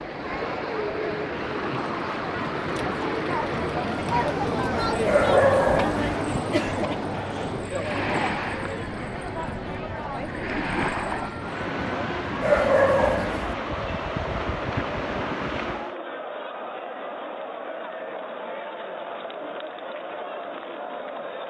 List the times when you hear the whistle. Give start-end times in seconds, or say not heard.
not heard.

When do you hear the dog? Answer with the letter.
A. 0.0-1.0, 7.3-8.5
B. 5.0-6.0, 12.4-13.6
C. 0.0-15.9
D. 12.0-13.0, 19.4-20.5
B.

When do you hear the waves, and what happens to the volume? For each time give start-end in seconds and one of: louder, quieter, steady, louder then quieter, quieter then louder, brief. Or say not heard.
0.0-15.9 steady.